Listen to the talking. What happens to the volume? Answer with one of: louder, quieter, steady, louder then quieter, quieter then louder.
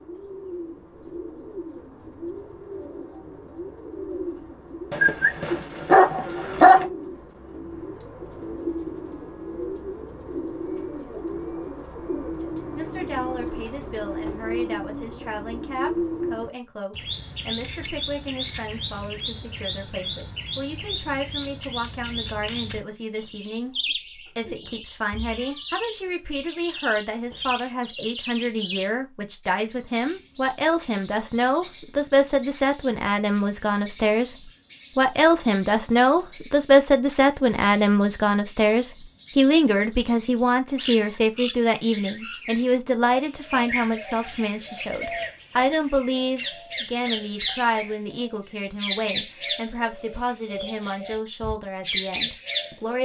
louder then quieter.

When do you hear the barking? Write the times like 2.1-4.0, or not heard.
4.9-6.8.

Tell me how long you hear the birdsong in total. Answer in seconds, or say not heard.
53 s.